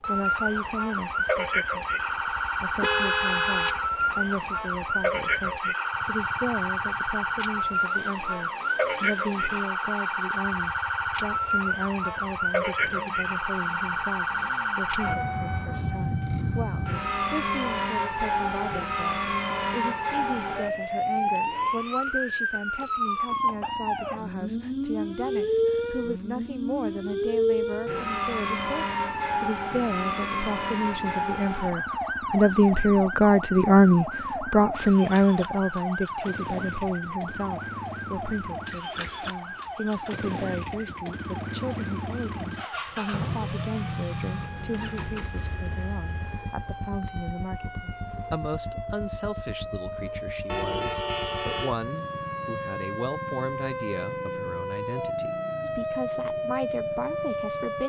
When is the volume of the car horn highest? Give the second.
3 s.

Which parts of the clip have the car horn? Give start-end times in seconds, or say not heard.
2.8-4.5, 50.5-51.8.